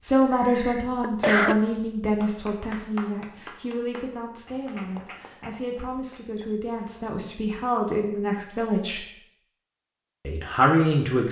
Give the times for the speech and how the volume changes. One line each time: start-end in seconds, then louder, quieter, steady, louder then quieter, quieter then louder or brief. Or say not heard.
0.0-9.1 quieter then louder
10.2-11.2 brief.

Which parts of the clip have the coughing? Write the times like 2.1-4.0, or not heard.
0.2-1.6.